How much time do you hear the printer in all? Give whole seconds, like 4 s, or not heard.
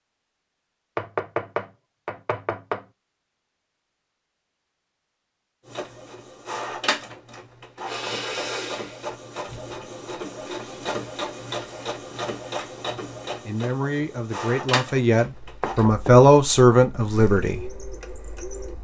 13 s.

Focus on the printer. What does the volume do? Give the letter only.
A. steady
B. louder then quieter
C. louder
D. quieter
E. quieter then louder
D.